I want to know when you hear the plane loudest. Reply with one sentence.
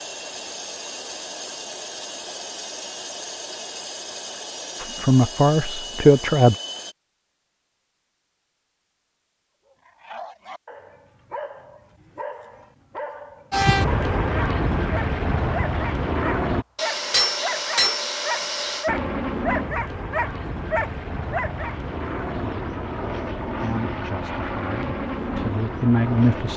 The loudest moment of the plane is at 14 seconds.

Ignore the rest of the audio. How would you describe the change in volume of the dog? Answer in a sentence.
The loudness of the dog goes up.